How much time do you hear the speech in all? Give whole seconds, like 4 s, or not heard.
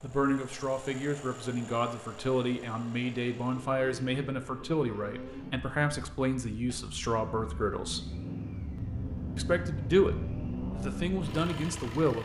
11 s.